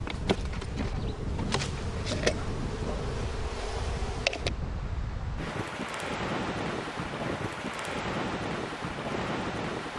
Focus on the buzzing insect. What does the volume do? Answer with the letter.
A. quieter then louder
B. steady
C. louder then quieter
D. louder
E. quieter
C.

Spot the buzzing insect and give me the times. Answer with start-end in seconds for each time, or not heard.
0.0-4.5.